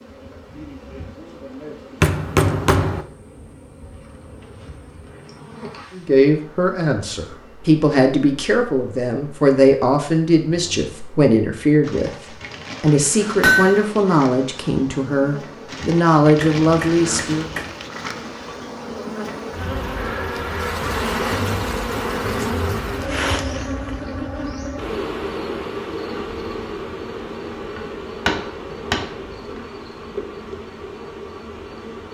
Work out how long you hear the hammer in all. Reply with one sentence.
You can hear the hammer for 5 seconds altogether.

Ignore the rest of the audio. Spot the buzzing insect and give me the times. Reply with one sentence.
You can hear the buzzing insect from 0.0 to 32.1 s.